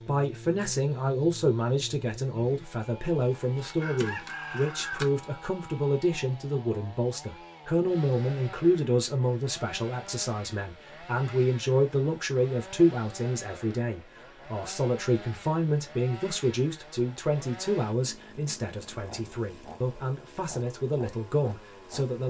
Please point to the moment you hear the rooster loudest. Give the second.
5 s.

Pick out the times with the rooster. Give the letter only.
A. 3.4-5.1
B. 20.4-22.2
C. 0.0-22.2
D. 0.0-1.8
A.